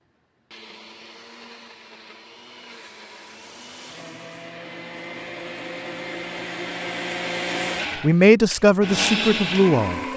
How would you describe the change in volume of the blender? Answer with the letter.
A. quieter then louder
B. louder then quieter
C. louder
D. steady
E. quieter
C.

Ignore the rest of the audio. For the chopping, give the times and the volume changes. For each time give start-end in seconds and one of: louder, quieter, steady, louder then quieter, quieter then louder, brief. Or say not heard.
not heard.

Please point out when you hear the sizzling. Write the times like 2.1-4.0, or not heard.
2.7-4.5.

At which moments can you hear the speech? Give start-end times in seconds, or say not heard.
8.0-10.0.